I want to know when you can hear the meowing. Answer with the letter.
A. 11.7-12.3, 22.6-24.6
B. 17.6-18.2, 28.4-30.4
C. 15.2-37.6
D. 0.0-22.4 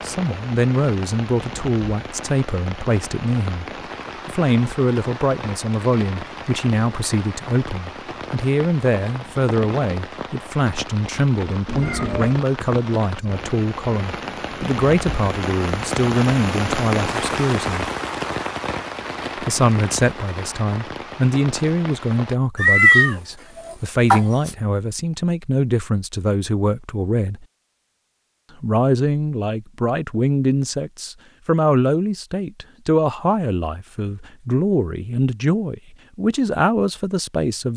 A.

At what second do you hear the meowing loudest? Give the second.
23 s.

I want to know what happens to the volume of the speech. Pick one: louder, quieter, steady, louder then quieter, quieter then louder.
steady.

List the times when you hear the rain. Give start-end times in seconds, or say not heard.
0.0-22.4.